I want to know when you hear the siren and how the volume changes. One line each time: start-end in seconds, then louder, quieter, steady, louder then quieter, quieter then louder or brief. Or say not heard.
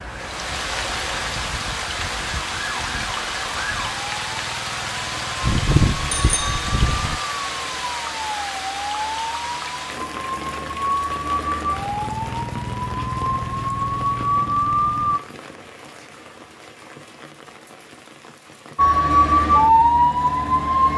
0.0-15.2 louder
18.8-20.9 brief.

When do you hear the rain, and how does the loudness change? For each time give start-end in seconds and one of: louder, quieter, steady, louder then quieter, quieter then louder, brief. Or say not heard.
0.0-20.9 quieter.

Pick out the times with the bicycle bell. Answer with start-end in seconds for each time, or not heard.
5.4-7.2.